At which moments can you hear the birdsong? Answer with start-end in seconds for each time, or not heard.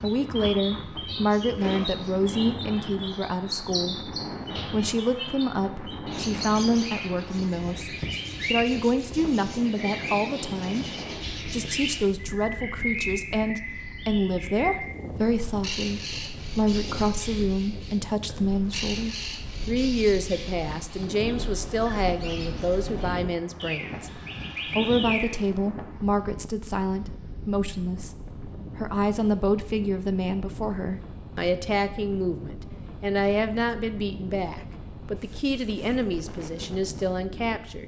0.0-25.4.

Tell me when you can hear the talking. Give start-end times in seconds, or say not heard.
0.0-10.8, 11.4-37.8.